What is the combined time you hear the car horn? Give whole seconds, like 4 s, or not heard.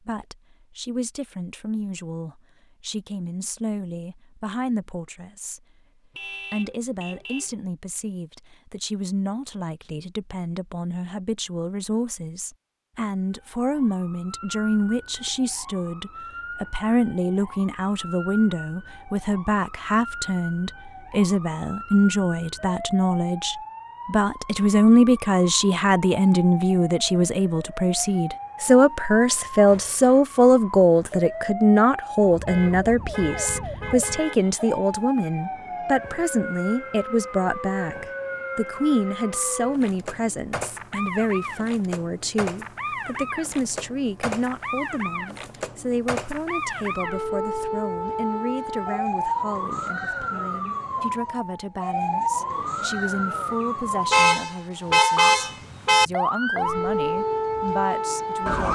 5 s.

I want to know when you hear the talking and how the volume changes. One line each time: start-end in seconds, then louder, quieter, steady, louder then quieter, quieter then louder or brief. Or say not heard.
0.1-5.6 steady
6.5-58.6 louder then quieter.